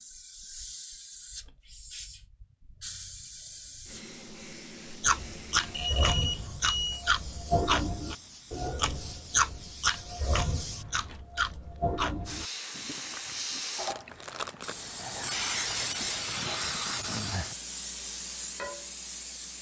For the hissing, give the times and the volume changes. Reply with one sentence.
You can hear the hissing from 0.0 to 19.5 s, getting louder.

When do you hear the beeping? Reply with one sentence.
The beeping can be heard from 5.7 to 7.0 s.